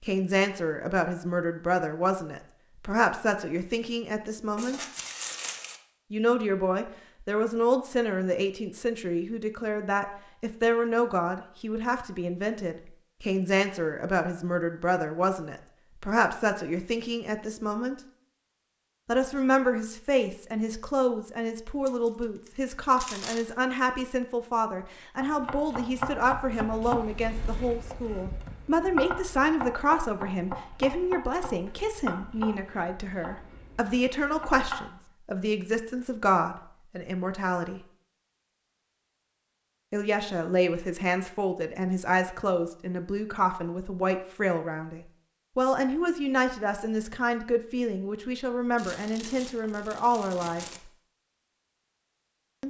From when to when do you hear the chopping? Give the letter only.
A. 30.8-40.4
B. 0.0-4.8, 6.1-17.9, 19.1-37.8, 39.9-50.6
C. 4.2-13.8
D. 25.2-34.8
D.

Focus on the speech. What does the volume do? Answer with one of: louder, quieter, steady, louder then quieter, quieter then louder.
steady.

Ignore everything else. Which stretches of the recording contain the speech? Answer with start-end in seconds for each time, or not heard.
0.0-4.8, 6.1-17.9, 19.1-37.8, 39.9-50.6.